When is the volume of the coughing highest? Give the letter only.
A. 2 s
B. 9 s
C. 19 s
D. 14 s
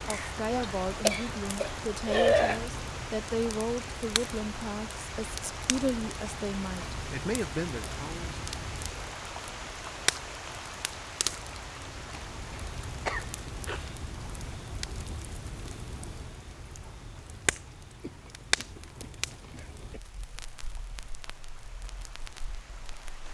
A.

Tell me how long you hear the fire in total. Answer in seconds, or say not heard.
23 s.